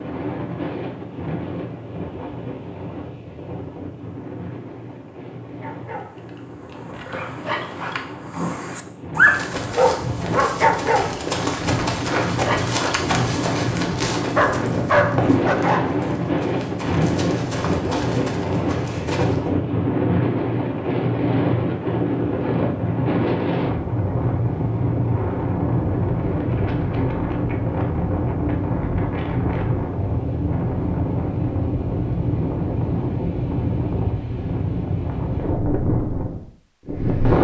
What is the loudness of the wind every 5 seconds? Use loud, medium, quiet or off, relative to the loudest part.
medium, quiet, medium, loud, loud, loud, loud, loud.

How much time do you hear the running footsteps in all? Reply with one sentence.
The running footsteps can be heard for 10 seconds in total.